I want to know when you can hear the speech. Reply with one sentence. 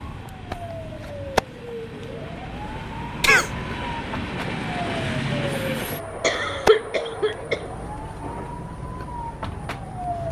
The speech can't be heard in this clip.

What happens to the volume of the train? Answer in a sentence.
The volume of the train goes up, then down.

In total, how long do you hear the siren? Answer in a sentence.
The siren can be heard for 10 seconds in total.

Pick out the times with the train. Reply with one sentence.
The train can be heard from 0.0 to 10.2 s.